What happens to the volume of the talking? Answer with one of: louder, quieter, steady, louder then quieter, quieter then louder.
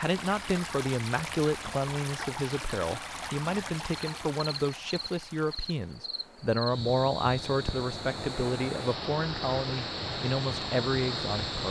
steady.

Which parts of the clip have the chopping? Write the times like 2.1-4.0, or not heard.
not heard.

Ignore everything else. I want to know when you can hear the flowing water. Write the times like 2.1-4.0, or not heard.
0.0-11.6.